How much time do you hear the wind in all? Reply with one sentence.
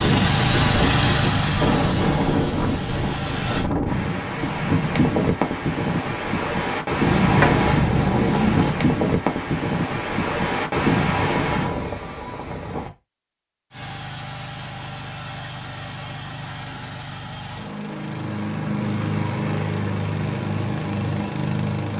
You can hear the wind for 13 seconds altogether.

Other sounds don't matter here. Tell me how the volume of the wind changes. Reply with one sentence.
The loudness of the wind stays about the same.